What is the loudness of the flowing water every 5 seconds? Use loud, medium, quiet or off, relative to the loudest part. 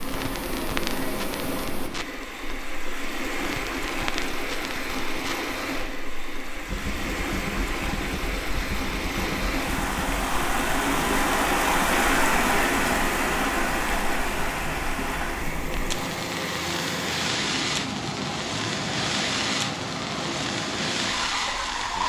medium, medium, loud, medium, medium.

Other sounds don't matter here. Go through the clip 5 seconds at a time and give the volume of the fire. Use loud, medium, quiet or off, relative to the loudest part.
medium, medium, quiet, loud, loud.